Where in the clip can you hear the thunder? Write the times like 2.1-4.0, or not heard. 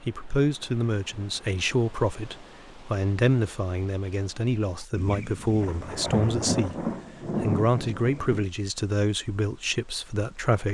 5.0-8.5.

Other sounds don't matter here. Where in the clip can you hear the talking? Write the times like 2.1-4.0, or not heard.
0.0-10.6.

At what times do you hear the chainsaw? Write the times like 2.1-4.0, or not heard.
not heard.